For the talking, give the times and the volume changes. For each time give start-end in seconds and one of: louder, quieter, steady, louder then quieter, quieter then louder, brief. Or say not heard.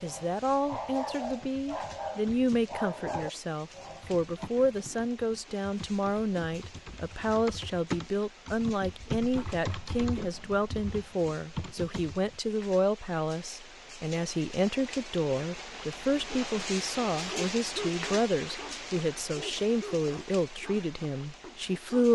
0.0-22.1 steady.